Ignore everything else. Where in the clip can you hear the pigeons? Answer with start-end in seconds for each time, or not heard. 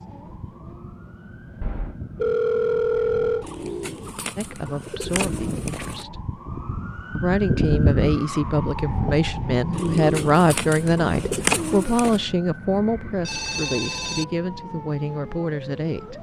3.4-6.0, 9.7-12.2.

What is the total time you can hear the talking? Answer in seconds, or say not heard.
11 s.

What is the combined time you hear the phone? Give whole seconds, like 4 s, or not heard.
3 s.